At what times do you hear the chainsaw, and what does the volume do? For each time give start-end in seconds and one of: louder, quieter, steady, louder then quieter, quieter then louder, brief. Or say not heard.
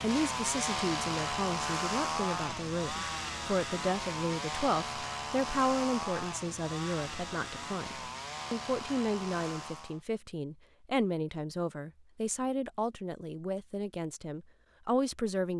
0.0-10.0 quieter.